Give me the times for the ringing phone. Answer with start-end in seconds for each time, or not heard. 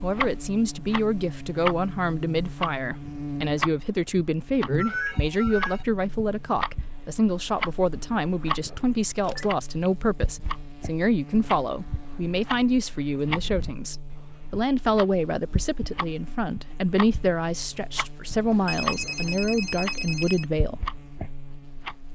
4.8-5.8, 9.2-9.6, 18.5-20.4.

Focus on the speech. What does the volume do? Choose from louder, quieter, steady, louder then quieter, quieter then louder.
steady.